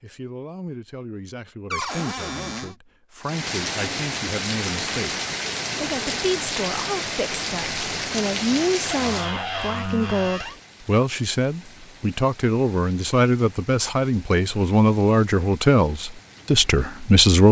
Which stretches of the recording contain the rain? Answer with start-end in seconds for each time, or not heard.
3.2-17.4.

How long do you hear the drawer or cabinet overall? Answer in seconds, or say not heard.
3 s.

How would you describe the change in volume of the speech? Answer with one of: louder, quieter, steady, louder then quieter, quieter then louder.
louder.